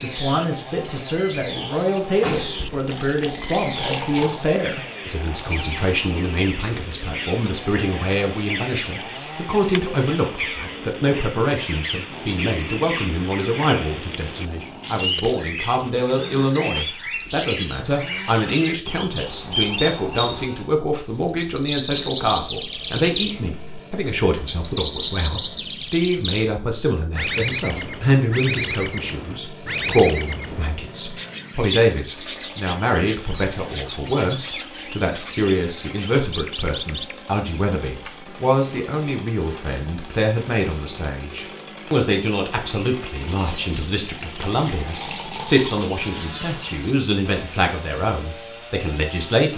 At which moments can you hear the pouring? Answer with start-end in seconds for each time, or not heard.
2.6-4.5, 44.0-46.0.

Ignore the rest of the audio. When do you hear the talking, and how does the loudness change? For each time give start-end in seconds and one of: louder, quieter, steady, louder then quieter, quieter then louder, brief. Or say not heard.
0.0-49.5 steady.